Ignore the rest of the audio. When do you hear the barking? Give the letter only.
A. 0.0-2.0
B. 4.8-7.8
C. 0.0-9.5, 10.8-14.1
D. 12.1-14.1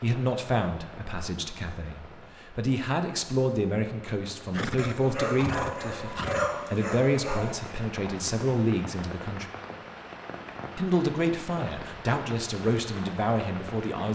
B.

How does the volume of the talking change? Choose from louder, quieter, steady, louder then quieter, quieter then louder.
steady.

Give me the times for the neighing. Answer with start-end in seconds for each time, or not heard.
4.5-6.5.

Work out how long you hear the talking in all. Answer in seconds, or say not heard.
13 s.